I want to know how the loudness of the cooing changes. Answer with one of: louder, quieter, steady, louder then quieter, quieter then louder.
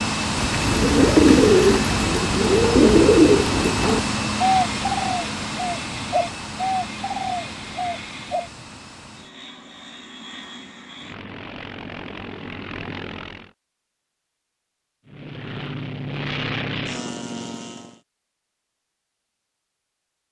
quieter.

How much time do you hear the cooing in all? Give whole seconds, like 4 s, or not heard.
8 s.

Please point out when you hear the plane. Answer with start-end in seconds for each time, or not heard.
0.0-13.5, 15.1-18.0.